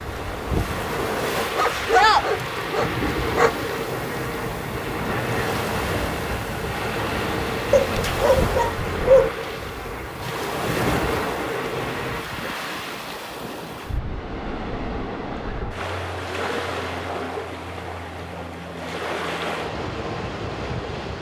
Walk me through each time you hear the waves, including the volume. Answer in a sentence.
The waves can be heard from 0.0 to 21.1 s, at a steady volume.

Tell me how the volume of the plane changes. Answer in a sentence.
The loudness of the plane stays about the same.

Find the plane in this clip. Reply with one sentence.
You can hear the plane from 0.0 to 12.2 s.